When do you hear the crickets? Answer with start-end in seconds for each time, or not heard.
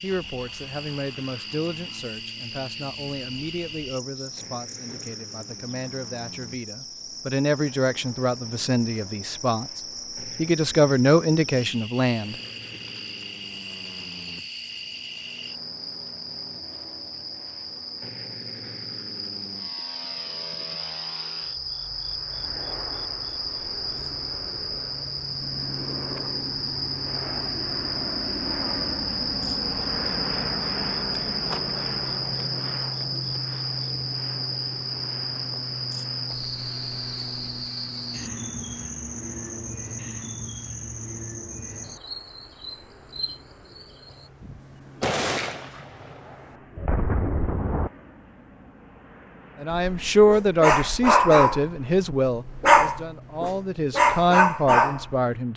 0.0-44.3.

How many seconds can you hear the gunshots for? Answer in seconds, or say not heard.
4 s.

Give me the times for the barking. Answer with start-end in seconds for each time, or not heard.
49.7-55.1.